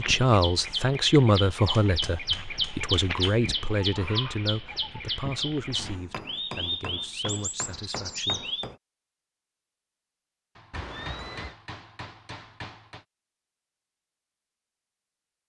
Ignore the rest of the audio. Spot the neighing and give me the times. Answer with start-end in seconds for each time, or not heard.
10.7-11.6.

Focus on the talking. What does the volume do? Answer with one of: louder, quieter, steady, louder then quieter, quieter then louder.
quieter.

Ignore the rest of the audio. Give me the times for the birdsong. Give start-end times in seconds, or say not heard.
0.0-8.7.